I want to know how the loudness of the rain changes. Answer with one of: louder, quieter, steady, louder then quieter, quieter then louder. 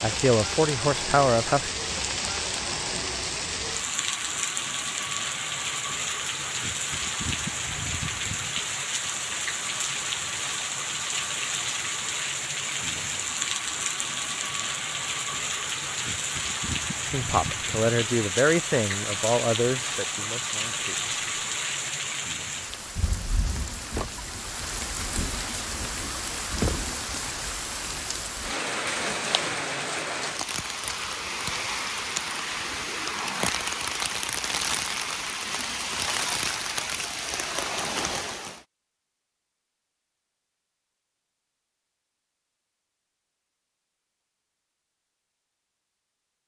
steady.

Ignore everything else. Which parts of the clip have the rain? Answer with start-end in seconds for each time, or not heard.
0.0-38.6.